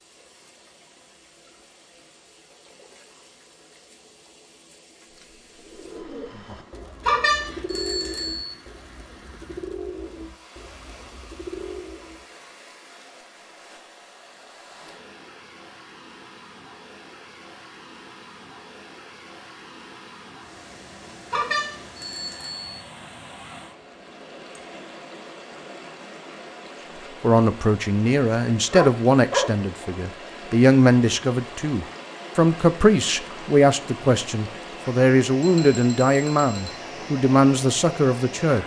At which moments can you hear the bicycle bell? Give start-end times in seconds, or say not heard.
7.0-8.6, 21.3-22.8, 35.4-36.8.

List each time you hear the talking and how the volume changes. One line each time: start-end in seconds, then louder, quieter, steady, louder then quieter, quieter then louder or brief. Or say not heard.
27.2-38.6 steady.